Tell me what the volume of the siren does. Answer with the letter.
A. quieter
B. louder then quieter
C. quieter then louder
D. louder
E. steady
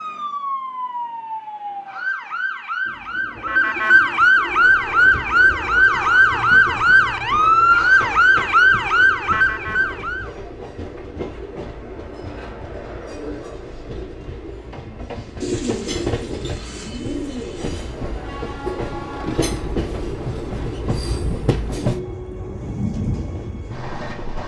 D.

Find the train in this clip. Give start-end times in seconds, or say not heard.
4.4-24.4.